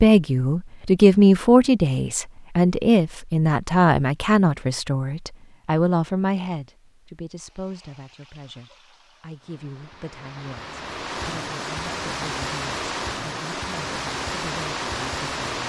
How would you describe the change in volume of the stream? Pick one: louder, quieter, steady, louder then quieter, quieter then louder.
louder.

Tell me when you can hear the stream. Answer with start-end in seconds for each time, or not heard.
7.3-15.6.